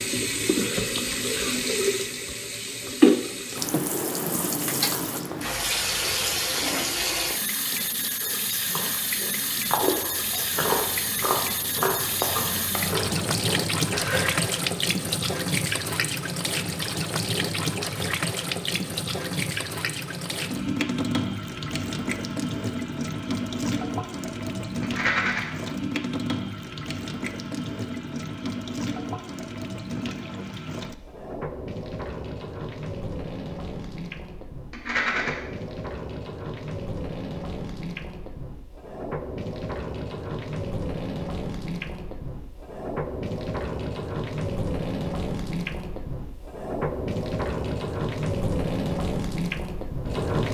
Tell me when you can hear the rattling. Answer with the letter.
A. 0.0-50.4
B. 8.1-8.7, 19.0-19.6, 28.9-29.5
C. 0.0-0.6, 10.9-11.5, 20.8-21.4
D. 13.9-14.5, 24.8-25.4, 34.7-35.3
D.